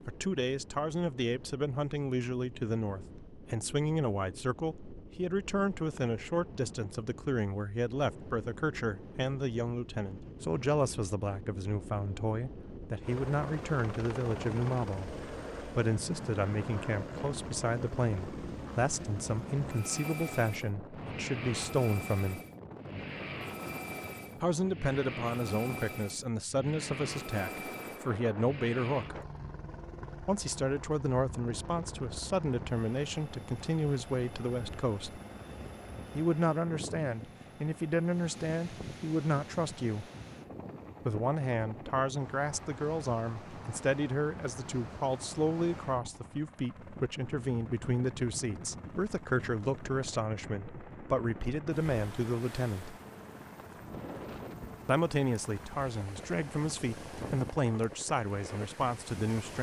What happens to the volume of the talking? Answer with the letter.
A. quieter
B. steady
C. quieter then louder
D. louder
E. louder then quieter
B.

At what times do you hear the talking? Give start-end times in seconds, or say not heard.
0.1-22.4, 24.4-29.2, 30.2-35.2, 36.1-40.0, 41.0-53.0, 54.9-59.5.